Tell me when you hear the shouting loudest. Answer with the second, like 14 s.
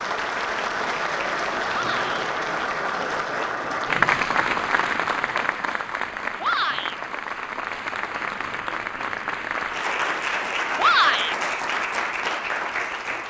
11 s.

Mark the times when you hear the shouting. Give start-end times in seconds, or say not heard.
1.7-2.2, 6.4-7.0, 10.8-11.3.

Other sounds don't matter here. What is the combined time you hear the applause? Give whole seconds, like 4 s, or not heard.
13 s.